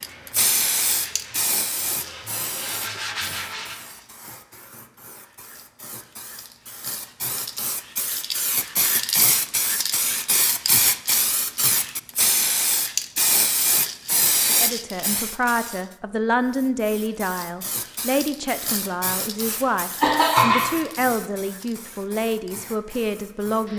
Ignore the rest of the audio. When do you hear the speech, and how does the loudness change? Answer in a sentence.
You can hear the speech from 14.5 to 23.7 s, at a steady volume.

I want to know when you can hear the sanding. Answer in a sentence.
You can hear the sanding from 0.0 to 3.8 s.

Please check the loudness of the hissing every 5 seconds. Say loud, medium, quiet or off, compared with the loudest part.
medium, medium, loud, medium, quiet.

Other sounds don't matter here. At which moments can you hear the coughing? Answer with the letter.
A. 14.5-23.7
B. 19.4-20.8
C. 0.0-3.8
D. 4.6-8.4
B.